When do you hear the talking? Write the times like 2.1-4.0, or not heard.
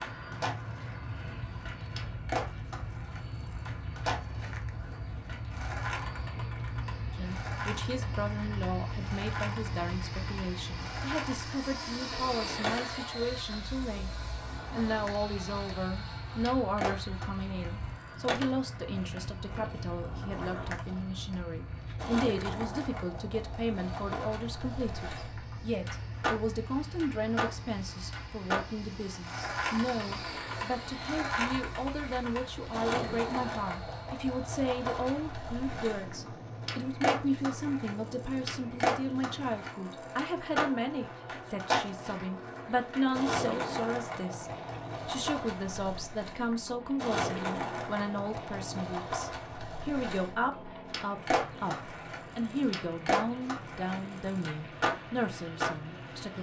7.2-14.1, 14.7-56.3.